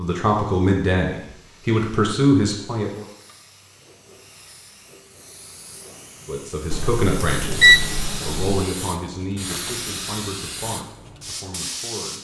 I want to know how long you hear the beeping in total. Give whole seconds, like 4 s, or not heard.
2 s.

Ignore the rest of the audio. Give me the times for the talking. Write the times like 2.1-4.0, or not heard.
0.0-3.0, 6.2-12.1.